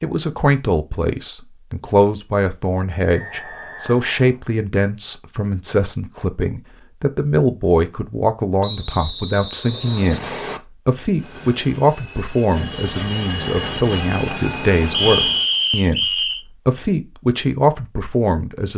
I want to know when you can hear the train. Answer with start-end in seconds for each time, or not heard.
11.2-15.5.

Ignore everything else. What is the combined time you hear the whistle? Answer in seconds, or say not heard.
5 s.